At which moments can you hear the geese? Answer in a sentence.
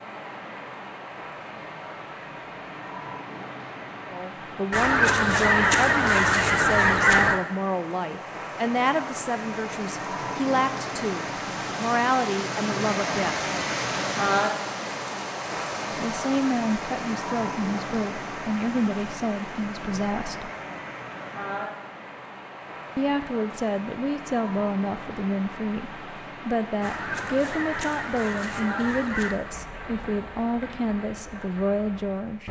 You can hear the geese from 4.7 to 7.4 s and from 26.8 to 29.4 s.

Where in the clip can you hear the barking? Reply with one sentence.
The barking can't be heard in this clip.